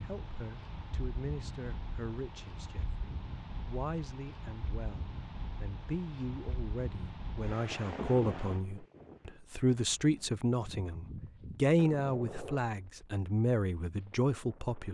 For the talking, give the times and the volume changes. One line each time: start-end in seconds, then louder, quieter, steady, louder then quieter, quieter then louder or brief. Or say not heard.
0.0-14.8 louder.